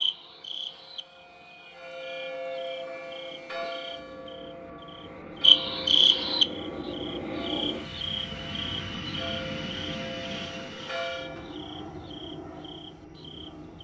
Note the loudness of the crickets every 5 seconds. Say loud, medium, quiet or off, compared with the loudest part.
quiet, loud, quiet.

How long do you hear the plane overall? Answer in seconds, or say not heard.
14 s.